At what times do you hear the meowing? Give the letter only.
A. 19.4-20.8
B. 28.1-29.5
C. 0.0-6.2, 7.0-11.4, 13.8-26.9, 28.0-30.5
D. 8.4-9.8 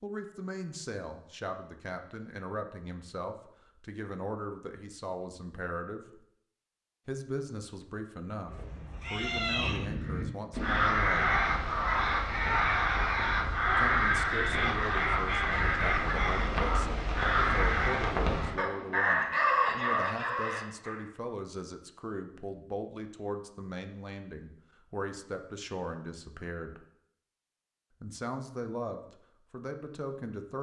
D.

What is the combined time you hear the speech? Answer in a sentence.
The speech can be heard for 26 seconds in total.